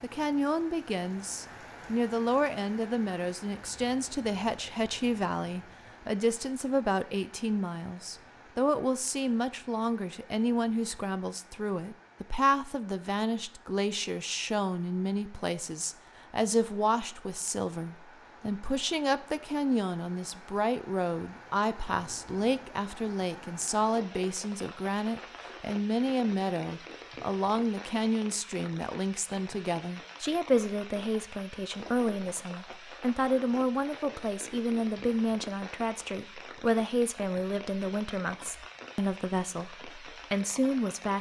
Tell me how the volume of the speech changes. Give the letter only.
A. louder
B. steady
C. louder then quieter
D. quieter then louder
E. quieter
B.